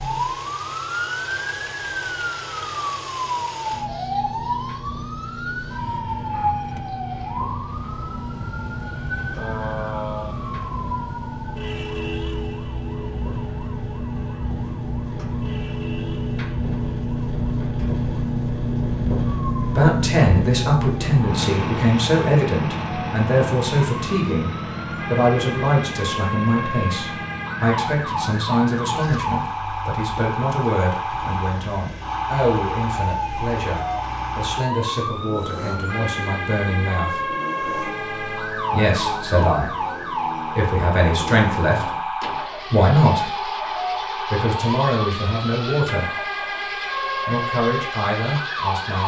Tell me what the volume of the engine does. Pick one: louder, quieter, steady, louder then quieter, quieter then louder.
louder then quieter.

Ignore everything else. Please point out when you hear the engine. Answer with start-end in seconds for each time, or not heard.
0.0-49.0.